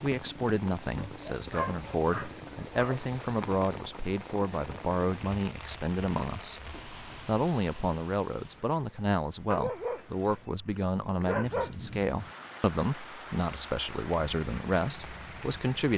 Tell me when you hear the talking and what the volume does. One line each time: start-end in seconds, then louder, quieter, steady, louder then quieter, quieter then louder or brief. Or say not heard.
0.0-15.9 steady.